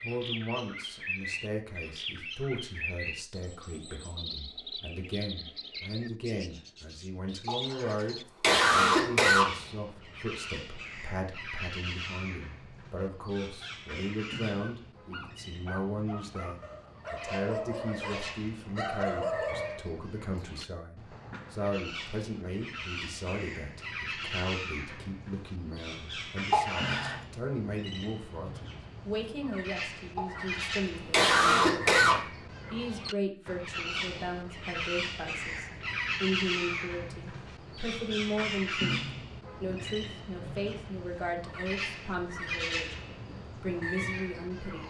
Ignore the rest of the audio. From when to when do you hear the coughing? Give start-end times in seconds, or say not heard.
7.5-9.4, 26.5-27.2, 30.1-32.1.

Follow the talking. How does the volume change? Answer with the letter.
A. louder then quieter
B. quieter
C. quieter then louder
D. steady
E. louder
D.